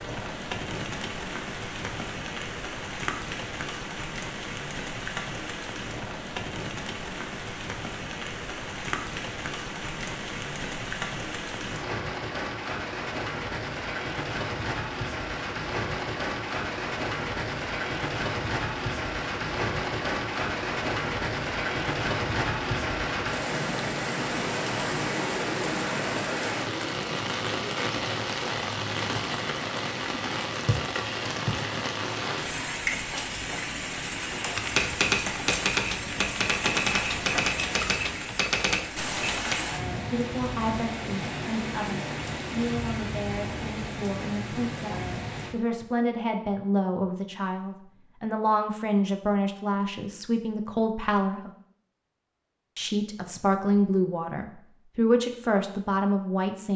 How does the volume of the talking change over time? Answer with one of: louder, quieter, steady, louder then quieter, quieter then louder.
louder.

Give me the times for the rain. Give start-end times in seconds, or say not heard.
0.0-45.5.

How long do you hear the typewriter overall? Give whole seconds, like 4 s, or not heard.
5 s.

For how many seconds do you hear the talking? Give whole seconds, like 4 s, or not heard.
15 s.